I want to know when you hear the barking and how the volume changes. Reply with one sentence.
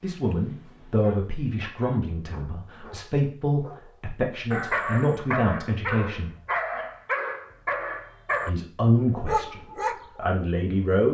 You can hear the barking from 0.0 to 10.2 s, getting louder.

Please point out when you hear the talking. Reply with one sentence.
You can hear the talking from 0.0 to 6.3 s and from 8.4 to 11.0 s.